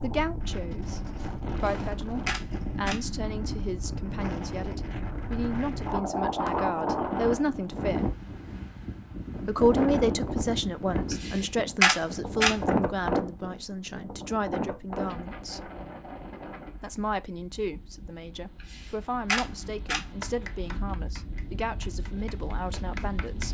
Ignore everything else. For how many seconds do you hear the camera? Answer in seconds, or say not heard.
4 s.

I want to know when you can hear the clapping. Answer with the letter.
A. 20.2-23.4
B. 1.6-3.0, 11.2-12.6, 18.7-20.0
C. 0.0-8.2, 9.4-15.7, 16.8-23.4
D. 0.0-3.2
A.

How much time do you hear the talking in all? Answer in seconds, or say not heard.
21 s.